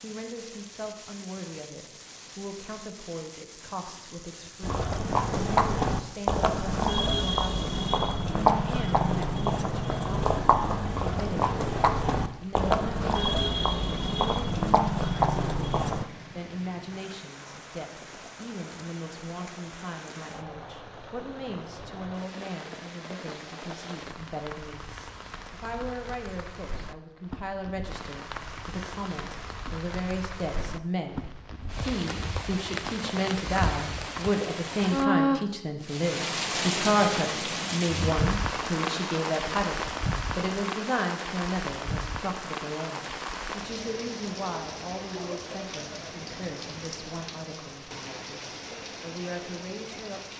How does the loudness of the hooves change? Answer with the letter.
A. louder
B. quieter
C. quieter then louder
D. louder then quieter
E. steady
E.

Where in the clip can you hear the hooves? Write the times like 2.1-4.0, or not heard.
4.6-16.1.